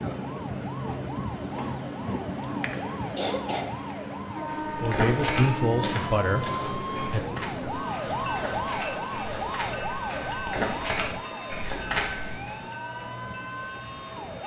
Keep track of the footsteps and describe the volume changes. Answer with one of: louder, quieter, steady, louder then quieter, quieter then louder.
quieter then louder.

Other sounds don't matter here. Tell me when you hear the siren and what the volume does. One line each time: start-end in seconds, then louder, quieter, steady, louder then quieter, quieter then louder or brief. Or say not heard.
0.2-14.4 louder then quieter.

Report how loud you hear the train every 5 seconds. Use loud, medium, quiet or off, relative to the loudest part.
loud, loud, medium.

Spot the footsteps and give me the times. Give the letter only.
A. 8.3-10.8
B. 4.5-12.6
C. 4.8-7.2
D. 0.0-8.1
B.